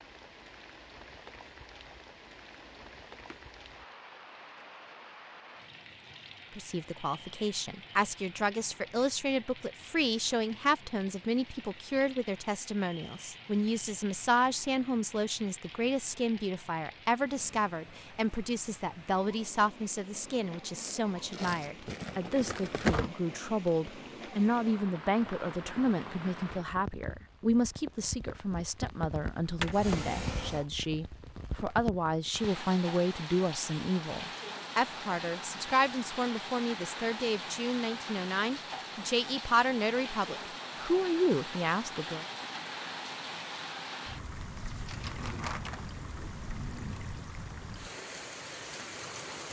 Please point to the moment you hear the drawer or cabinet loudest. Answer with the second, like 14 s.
30 s.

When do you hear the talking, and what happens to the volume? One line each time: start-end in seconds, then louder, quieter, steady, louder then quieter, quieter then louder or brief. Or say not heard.
6.5-42.2 steady.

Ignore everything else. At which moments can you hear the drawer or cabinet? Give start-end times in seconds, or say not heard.
2.5-3.5, 29.4-30.7, 44.9-47.2.